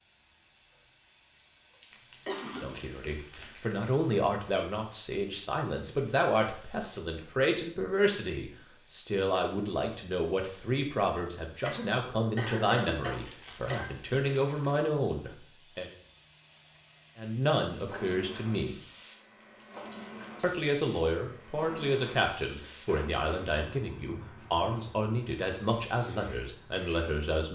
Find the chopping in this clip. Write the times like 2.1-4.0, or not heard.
not heard.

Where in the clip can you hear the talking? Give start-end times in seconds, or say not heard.
2.5-15.9, 17.1-18.8, 20.4-27.5.